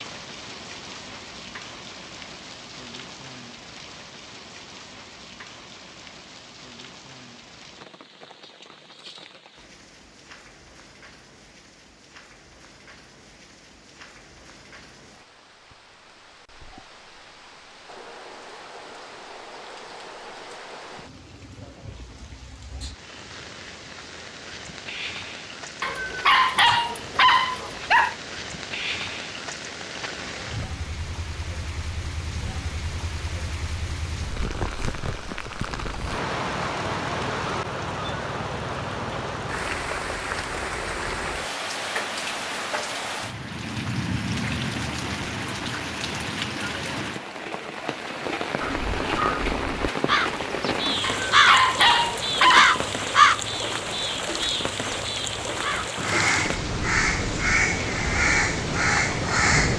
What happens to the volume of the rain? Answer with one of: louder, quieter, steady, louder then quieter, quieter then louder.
louder.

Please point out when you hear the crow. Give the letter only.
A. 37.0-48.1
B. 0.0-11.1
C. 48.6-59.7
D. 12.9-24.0
C.